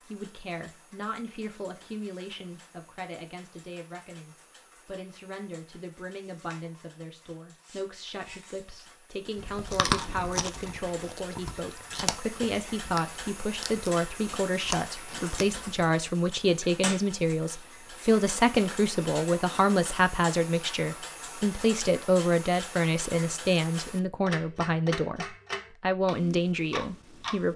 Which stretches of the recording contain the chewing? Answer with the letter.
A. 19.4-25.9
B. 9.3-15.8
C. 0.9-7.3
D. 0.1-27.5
B.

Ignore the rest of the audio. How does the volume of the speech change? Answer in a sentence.
The volume of the speech goes up.